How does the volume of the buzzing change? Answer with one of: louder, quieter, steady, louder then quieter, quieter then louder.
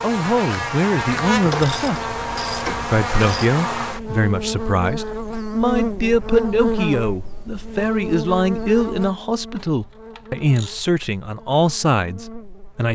quieter.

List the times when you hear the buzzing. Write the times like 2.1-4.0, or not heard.
0.0-12.9.